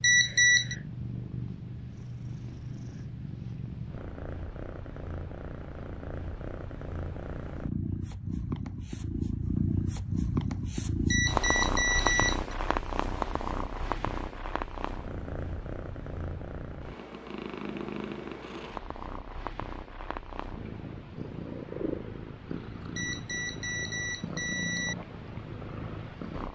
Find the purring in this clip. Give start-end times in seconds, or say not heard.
0.0-26.5.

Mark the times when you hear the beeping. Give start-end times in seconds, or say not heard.
0.0-0.8, 11.1-12.6, 22.9-24.9.